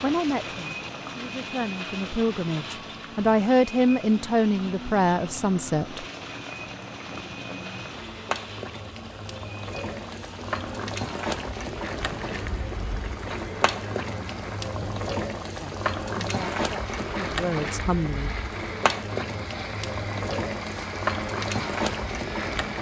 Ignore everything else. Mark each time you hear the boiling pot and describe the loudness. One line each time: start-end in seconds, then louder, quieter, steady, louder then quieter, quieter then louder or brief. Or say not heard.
0.0-22.7 louder.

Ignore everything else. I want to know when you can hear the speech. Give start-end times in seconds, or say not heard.
0.0-6.0, 15.6-18.4.